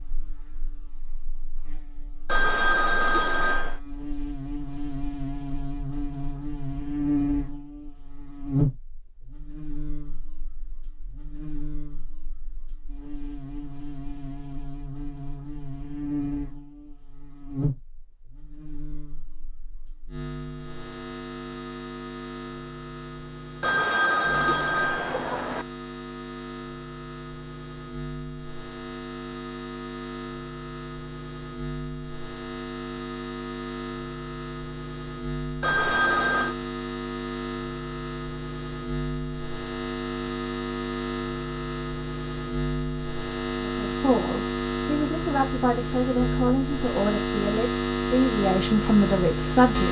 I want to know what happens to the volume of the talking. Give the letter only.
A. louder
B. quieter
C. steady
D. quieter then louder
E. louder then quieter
A.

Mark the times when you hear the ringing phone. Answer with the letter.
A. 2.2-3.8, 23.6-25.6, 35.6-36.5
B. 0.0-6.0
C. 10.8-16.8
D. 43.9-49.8
A.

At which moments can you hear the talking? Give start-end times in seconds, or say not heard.
43.9-49.8.